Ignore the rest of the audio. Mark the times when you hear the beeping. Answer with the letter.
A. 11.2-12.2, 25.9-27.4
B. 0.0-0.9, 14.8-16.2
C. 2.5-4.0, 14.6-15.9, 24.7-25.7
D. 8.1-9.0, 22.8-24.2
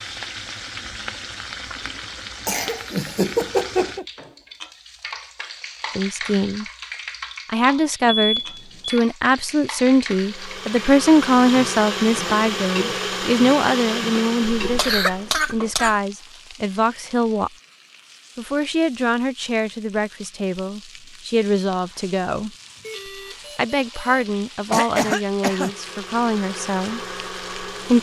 D.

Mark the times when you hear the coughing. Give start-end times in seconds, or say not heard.
2.5-4.0, 14.6-15.9, 24.7-25.7.